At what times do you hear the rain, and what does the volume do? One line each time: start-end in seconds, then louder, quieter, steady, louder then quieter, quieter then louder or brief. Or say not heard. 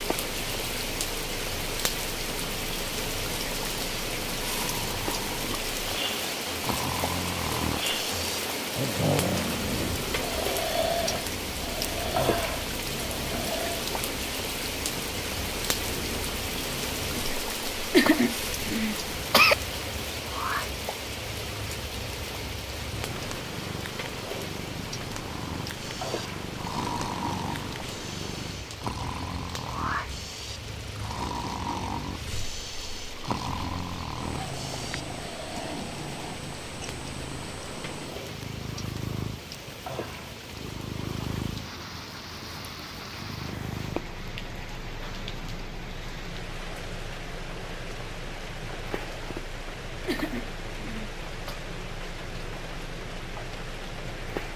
0.0-54.5 quieter.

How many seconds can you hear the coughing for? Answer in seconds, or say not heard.
3 s.